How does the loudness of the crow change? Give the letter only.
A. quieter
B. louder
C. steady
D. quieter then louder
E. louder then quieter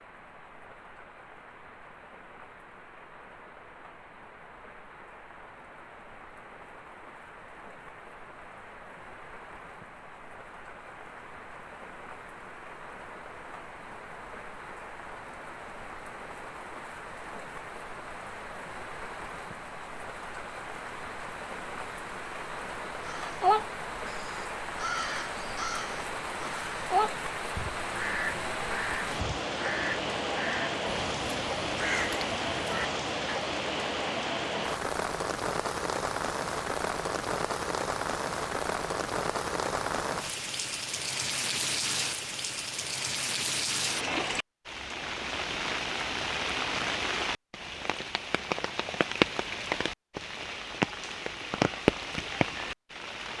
A.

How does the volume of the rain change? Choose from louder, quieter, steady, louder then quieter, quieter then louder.
louder.